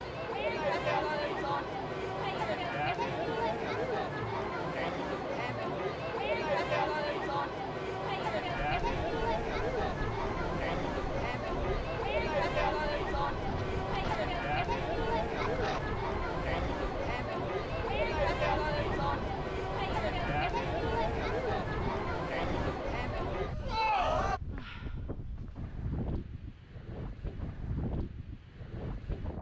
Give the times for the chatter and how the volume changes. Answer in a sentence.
You can hear the chatter from 0.0 to 24.4 s, at a steady volume.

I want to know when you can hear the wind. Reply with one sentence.
The wind can be heard from 8.6 to 29.3 s.